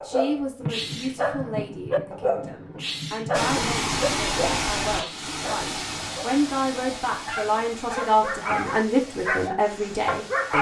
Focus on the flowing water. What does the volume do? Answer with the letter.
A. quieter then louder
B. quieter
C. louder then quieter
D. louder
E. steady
B.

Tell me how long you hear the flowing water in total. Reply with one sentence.
The flowing water can be heard for 7 seconds in total.